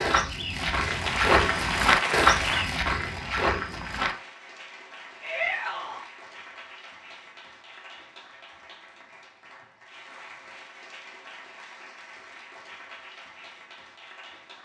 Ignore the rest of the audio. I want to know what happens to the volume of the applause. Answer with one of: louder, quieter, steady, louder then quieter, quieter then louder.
quieter.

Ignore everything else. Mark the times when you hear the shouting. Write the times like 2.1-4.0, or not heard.
5.2-6.0.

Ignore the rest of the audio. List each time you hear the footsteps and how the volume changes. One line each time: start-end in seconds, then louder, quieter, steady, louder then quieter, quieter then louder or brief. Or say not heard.
0.0-4.2 louder then quieter.